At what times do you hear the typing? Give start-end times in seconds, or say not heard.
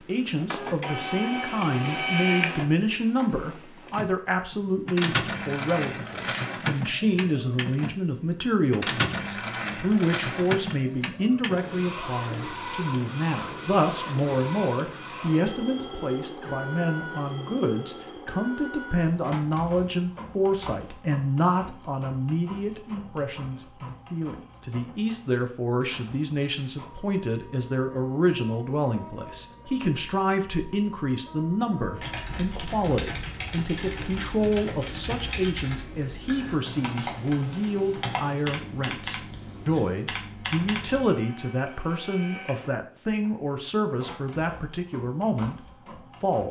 31.9-41.1.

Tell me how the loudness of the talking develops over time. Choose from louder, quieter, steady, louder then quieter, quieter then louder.
steady.